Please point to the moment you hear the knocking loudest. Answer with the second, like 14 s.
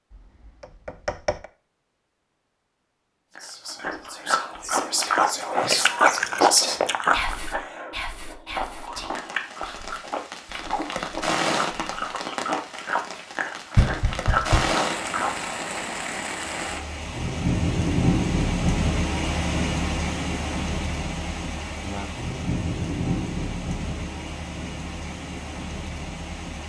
14 s.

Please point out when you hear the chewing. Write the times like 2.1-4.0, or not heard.
3.4-15.5.